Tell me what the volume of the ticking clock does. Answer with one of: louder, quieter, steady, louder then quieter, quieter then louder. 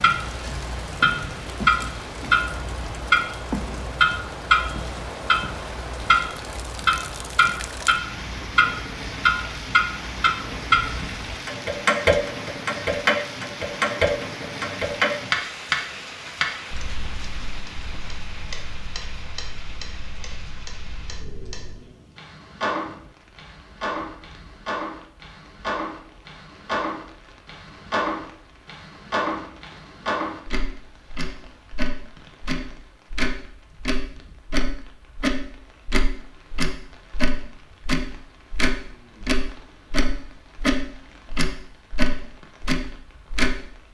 quieter then louder.